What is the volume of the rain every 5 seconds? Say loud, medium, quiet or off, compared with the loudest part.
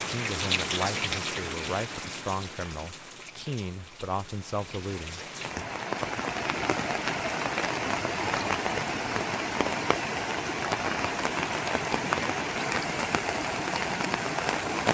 medium, loud, loud.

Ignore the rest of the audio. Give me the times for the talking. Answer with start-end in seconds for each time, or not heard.
0.0-5.7.